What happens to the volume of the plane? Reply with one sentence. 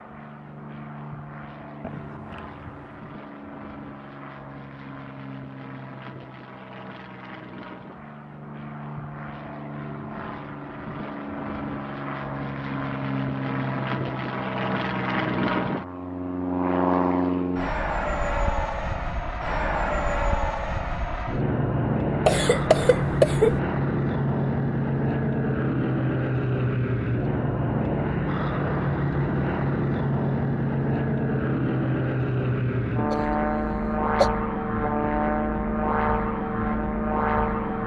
The loudness of the plane goes up.